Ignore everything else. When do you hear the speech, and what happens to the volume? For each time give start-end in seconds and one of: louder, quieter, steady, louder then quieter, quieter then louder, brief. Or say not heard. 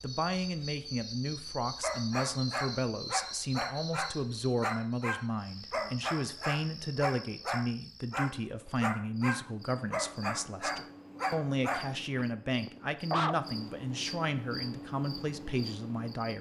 0.0-16.3 steady.